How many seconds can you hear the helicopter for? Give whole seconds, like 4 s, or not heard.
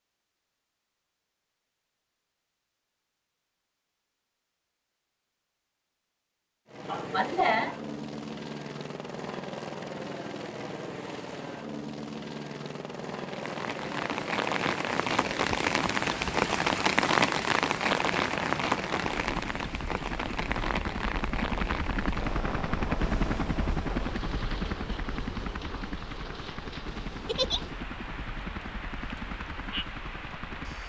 24 s.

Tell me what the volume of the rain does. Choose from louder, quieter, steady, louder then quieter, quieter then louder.
quieter.